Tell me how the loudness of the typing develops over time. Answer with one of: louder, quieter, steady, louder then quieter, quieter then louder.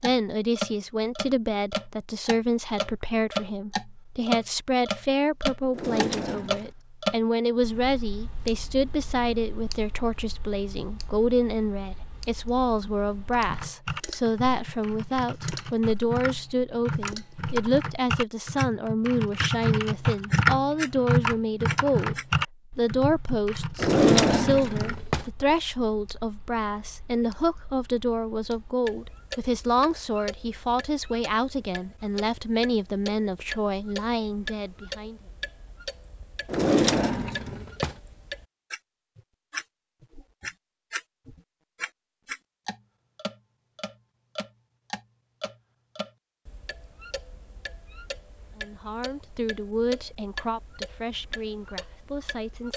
louder then quieter.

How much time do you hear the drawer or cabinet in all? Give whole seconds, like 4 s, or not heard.
4 s.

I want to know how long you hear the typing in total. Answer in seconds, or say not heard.
12 s.